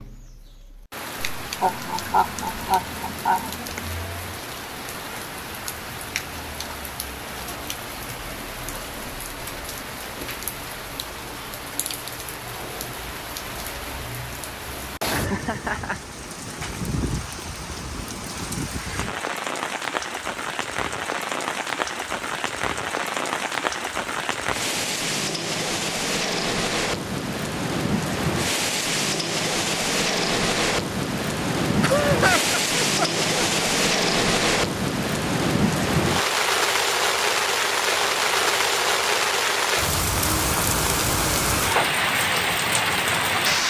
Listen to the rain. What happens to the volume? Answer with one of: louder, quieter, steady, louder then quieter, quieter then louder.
louder.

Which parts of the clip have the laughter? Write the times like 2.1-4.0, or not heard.
1.6-3.9, 15.1-16.0, 31.8-33.6.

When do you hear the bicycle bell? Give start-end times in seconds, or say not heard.
not heard.